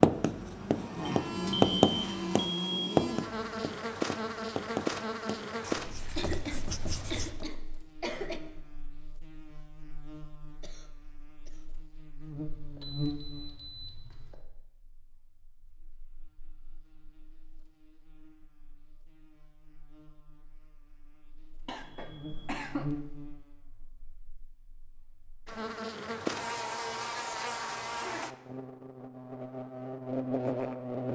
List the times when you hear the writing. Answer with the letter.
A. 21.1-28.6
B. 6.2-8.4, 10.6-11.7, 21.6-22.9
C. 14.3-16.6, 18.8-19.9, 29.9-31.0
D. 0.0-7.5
D.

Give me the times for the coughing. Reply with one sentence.
You can hear the coughing from 6.2 to 8.4 s, from 10.6 to 11.7 s and from 21.6 to 22.9 s.